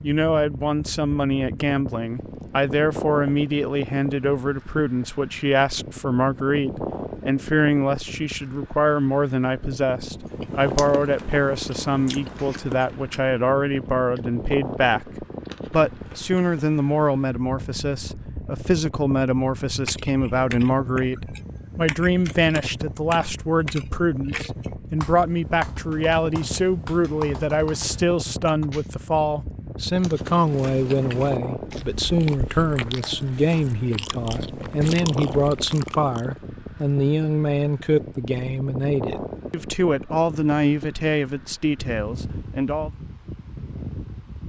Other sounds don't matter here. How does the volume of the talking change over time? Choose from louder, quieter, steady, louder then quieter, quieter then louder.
steady.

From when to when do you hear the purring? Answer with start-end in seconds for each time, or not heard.
not heard.